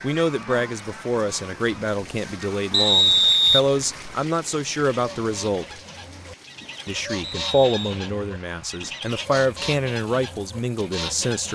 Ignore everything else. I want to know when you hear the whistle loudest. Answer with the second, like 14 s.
3 s.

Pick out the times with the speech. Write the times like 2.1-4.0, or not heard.
0.0-5.8, 6.8-11.5.